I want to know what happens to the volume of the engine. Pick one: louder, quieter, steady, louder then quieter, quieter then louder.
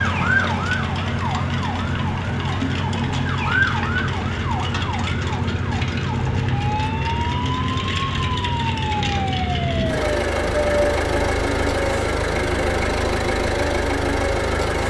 steady.